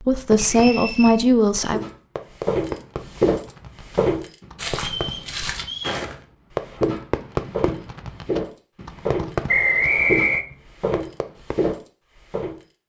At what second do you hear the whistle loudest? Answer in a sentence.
The volume of the whistle peaks at 10 seconds.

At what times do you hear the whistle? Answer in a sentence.
You can hear the whistle from 0.3 to 1.1 s, from 4.8 to 6.0 s and from 9.4 to 10.4 s.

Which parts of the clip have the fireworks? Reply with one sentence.
You can hear the fireworks from 0.1 to 11.6 s.